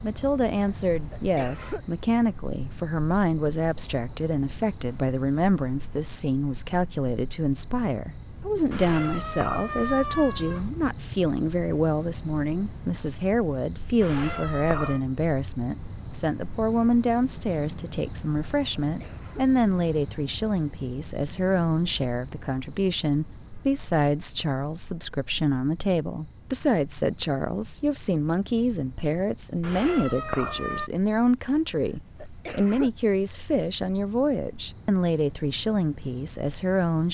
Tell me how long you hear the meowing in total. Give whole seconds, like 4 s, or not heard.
4 s.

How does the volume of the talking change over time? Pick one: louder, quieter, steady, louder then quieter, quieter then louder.
steady.